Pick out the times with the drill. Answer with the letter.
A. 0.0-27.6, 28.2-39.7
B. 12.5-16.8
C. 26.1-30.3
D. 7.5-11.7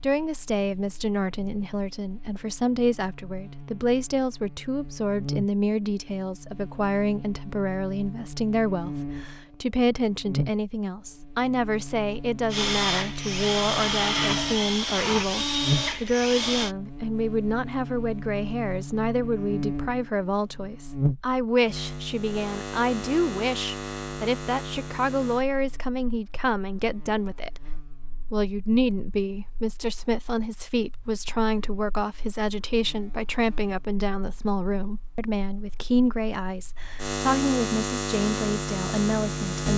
B.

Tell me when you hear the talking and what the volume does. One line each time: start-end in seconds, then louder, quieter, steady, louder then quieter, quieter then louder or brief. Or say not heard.
0.0-27.6 steady
28.2-39.7 steady.